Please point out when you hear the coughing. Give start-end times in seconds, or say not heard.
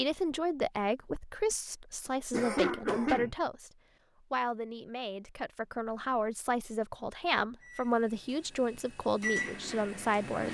2.3-3.4.